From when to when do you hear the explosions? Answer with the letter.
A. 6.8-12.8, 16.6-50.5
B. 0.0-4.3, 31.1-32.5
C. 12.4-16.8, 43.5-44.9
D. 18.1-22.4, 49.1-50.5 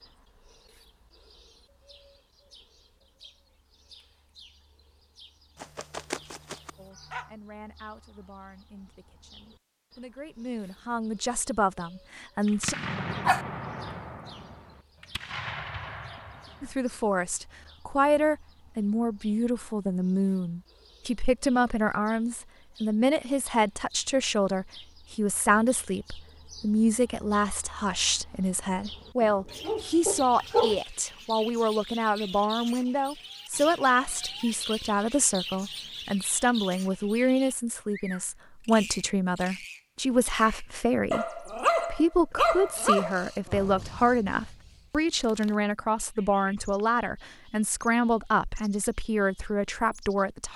C.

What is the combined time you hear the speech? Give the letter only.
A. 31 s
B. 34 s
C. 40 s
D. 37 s
C.